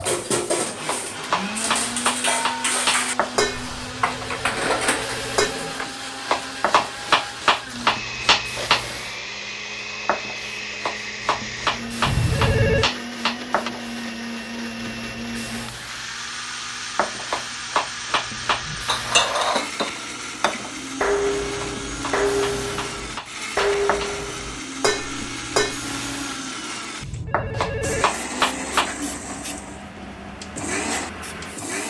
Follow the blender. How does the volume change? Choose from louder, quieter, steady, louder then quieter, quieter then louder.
steady.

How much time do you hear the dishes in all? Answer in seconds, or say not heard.
13 s.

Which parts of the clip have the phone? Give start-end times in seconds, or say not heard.
3.5-6.0, 12.1-12.9, 27.0-28.1.